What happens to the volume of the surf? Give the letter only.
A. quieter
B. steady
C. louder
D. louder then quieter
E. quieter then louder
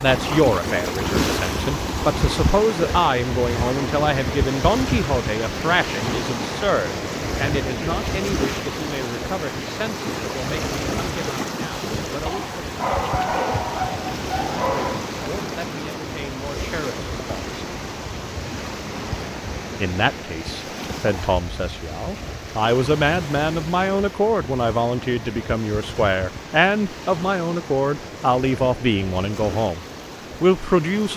A.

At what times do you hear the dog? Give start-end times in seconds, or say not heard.
12.2-15.1.